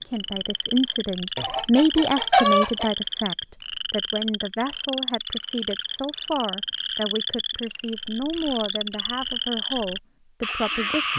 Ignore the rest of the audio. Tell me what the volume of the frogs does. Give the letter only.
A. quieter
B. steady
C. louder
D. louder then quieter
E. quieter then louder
B.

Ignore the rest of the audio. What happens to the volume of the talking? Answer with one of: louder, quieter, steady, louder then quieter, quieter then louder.
quieter.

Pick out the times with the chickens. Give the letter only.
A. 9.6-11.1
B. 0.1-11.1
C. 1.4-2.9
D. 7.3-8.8
C.